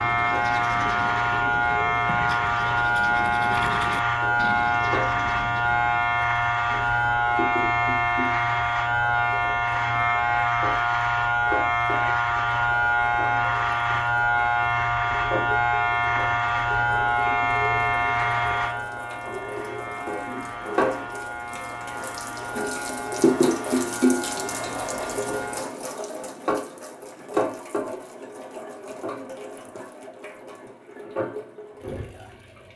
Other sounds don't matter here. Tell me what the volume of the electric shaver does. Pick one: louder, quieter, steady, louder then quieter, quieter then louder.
quieter.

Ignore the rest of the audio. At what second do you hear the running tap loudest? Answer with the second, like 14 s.
24 s.